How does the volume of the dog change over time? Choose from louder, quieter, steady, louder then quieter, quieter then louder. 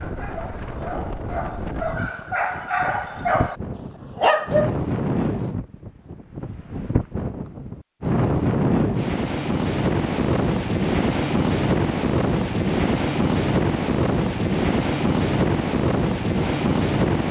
louder.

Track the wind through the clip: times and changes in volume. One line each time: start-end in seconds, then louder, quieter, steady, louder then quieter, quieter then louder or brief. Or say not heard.
0.0-17.2 louder.